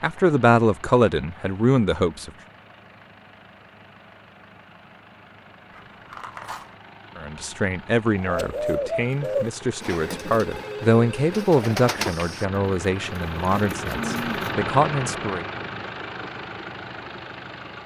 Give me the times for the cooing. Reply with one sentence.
The cooing can be heard from 8.2 to 14.6 s.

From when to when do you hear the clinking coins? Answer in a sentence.
You can hear the clinking coins from 5.7 to 6.8 s.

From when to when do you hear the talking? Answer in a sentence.
You can hear the talking from 0.0 to 2.3 s and from 7.2 to 15.4 s.